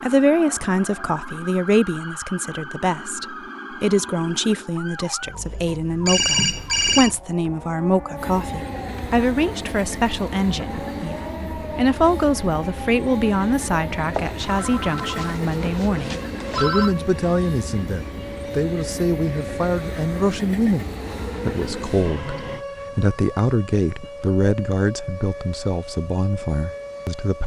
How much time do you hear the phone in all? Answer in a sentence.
You can hear the phone for 4 seconds altogether.